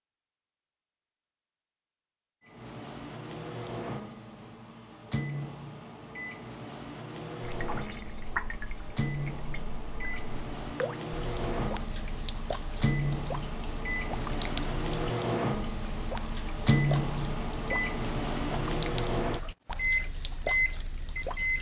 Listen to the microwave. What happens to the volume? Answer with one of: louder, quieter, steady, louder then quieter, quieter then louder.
louder.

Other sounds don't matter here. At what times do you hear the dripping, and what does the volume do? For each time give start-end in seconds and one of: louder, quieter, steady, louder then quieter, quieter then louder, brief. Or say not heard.
7.5-21.5 steady.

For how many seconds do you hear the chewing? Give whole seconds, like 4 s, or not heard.
not heard.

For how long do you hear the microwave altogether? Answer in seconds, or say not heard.
19 s.